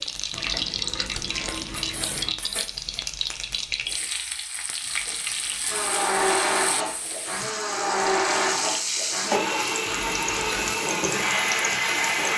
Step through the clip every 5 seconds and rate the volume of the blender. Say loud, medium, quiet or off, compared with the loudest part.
off, loud, loud.